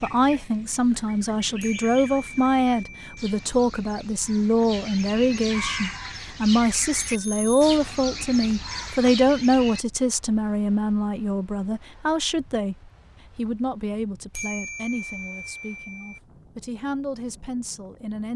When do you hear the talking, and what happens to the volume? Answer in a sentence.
The talking can be heard from 0.0 to 18.3 s, getting quieter.